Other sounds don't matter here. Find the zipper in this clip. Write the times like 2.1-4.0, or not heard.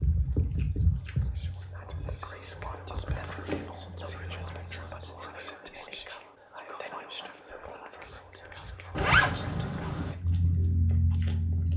3.0-3.7, 8.9-10.2.